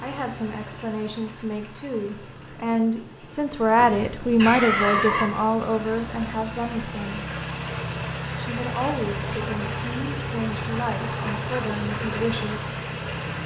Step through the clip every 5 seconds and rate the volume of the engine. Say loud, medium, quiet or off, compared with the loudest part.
quiet, loud, loud.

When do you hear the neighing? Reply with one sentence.
The neighing can be heard from 3.8 to 5.3 s.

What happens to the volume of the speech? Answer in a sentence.
The volume of the speech goes up, then down.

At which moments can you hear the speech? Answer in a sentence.
You can hear the speech from 0.0 to 7.3 s and from 8.3 to 12.7 s.